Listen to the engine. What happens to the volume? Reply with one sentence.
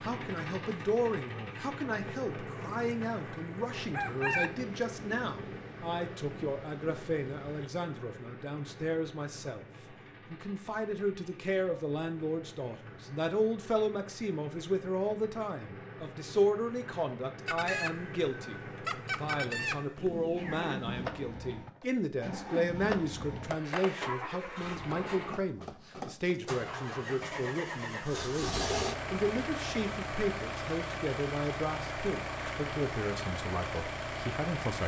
The loudness of the engine goes down, then up.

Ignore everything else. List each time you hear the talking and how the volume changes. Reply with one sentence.
You can hear the talking from 0.0 to 9.7 s, at a steady volume; and from 10.3 to 34.8 s, at a steady volume.